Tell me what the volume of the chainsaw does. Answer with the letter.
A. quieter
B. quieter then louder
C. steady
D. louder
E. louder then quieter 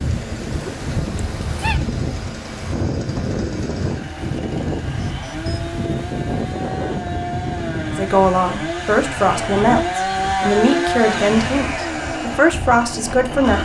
D.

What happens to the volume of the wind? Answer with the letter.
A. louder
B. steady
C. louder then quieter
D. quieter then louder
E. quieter
E.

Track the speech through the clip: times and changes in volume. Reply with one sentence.
The speech can be heard from 7.8 to 13.6 s, at a steady volume.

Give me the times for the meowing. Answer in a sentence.
The meowing can be heard from 0.5 to 1.8 s.